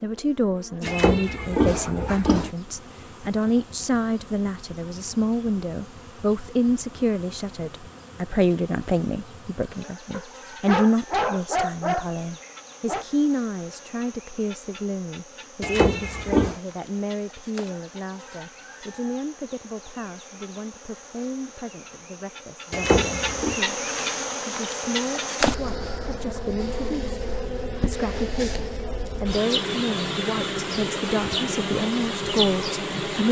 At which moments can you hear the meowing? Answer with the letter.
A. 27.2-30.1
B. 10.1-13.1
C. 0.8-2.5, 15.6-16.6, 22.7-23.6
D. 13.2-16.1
C.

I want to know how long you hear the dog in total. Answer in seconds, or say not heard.
3 s.